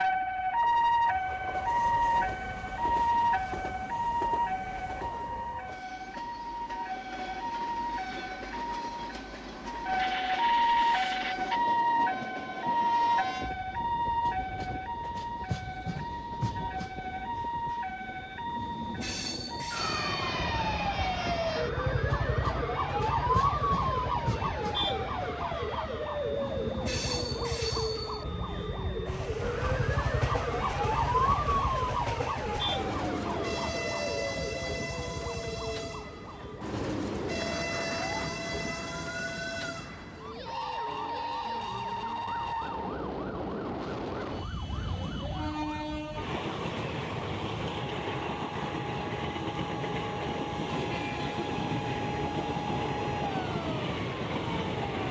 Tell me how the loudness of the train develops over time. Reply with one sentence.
The loudness of the train goes up.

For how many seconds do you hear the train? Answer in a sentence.
You can hear the train for 55 seconds altogether.